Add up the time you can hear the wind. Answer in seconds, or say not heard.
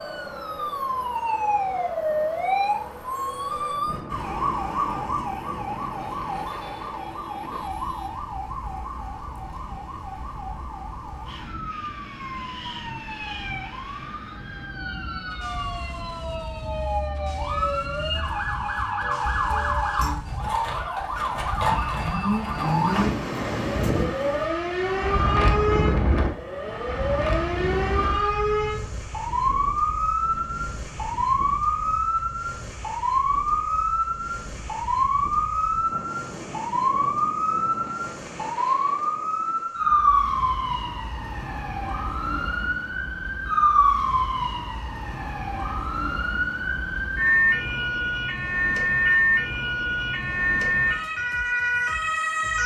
40 s.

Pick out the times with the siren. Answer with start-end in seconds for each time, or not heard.
0.0-52.6.